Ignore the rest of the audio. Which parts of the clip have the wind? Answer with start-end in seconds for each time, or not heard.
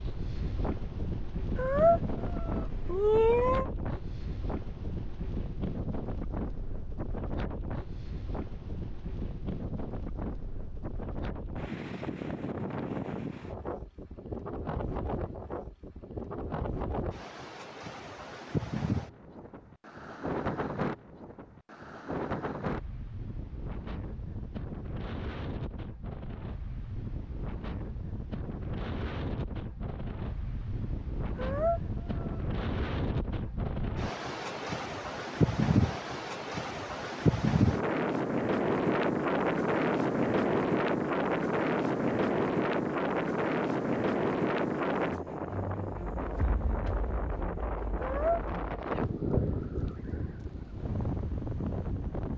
0.0-52.3.